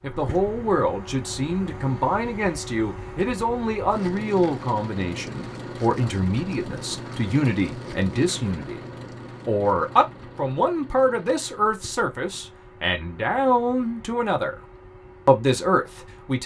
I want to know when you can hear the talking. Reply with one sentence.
The talking can be heard from 0.0 to 8.8 s, from 9.4 to 14.6 s and from 15.2 to 16.4 s.